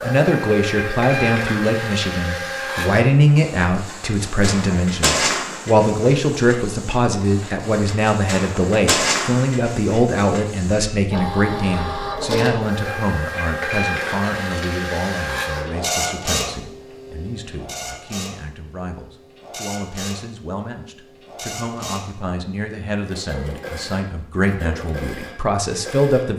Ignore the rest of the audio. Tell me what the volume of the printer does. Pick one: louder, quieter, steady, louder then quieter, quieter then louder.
quieter.